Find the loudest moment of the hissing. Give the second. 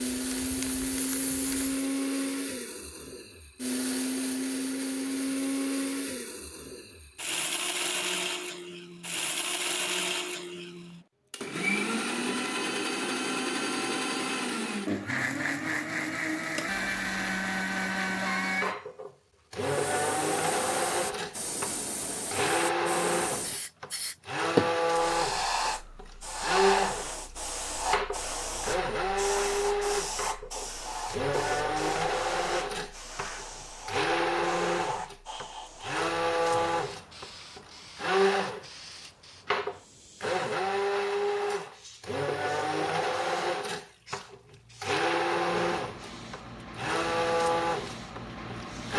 25 s.